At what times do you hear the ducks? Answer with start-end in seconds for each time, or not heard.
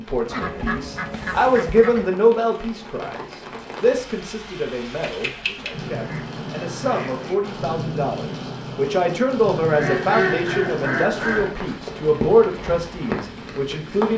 0.2-2.1, 5.5-7.6, 9.7-11.6.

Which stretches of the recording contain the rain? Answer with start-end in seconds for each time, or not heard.
0.0-14.1.